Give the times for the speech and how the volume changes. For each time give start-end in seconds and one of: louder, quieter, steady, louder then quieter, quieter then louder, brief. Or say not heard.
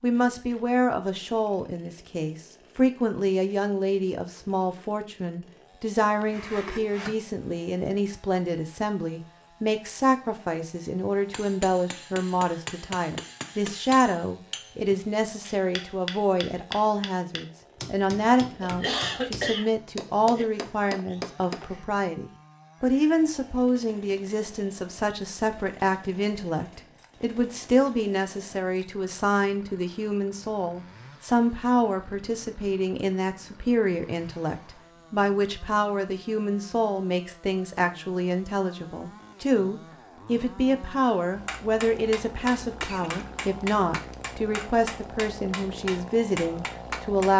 0.0-47.3 steady.